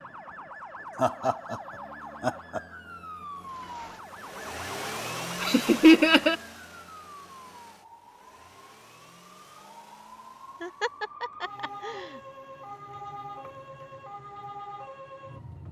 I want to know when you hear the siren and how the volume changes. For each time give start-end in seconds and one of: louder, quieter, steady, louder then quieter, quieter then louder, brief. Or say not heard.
0.0-15.6 quieter then louder.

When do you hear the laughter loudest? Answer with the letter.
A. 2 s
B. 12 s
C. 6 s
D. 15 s
C.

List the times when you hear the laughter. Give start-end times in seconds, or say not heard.
0.9-2.6, 5.4-6.3, 10.6-12.2.